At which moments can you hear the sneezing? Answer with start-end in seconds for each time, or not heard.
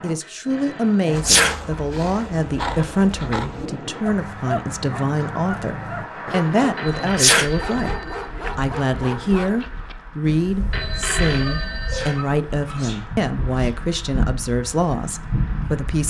1.1-1.6, 7.0-7.5, 11.7-13.7.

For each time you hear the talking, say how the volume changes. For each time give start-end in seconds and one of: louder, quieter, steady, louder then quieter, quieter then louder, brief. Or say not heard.
0.0-16.0 steady.